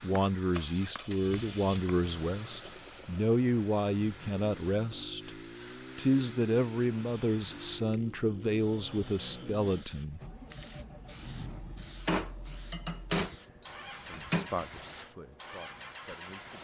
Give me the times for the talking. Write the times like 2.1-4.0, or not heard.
0.0-5.3, 6.0-10.2, 14.0-16.5.